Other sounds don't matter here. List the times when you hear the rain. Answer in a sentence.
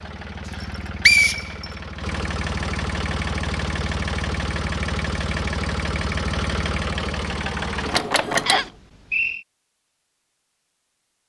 You can't hear the rain here.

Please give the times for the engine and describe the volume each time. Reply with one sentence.
You can hear the engine from 0.0 to 8.7 s, getting louder.